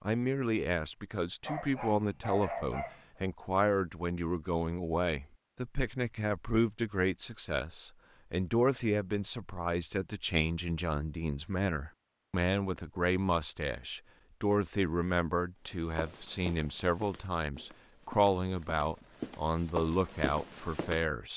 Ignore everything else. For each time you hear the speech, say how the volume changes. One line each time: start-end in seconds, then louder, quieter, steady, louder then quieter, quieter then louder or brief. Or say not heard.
0.0-21.3 steady.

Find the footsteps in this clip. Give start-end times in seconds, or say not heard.
15.8-21.1.